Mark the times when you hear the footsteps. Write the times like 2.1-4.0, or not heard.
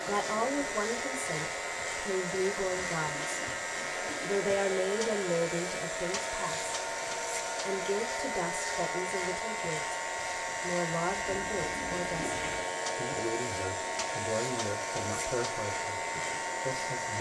not heard.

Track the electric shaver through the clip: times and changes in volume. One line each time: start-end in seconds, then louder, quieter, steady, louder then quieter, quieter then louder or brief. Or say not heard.
0.0-17.1 steady.